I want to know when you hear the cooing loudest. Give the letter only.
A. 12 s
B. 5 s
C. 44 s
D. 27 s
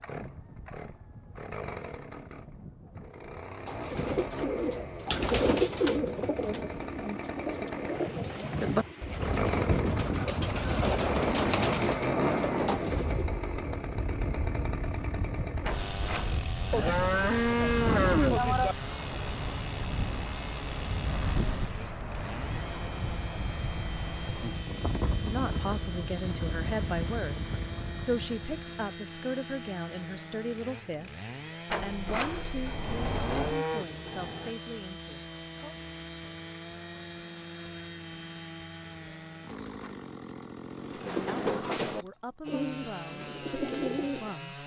B.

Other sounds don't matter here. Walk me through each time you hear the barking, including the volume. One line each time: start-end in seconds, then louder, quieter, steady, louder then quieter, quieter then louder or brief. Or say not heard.
not heard.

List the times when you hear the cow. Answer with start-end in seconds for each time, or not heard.
16.7-18.8, 33.1-34.5.